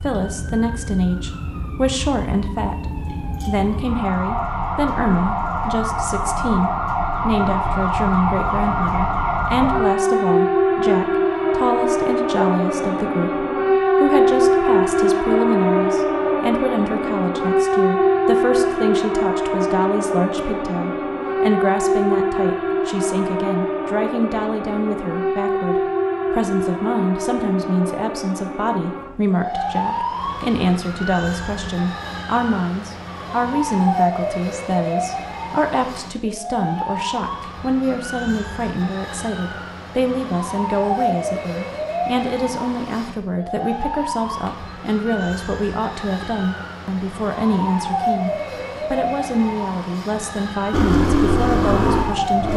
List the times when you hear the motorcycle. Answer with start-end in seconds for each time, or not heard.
50.7-52.5.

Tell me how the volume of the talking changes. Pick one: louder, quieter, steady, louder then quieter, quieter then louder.
steady.